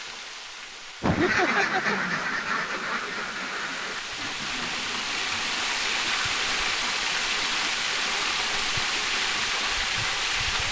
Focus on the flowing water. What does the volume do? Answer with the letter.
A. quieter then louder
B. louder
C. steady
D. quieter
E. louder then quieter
B.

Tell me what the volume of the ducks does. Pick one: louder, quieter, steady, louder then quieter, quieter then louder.
quieter.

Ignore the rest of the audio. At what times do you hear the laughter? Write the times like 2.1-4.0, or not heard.
1.0-2.0.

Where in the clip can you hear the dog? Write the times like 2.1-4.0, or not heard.
not heard.